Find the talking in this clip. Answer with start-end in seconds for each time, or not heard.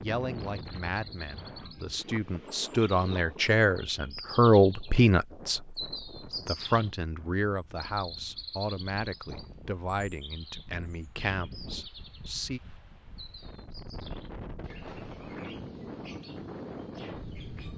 0.0-12.6.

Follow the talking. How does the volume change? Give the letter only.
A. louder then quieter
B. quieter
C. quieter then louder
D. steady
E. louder
A.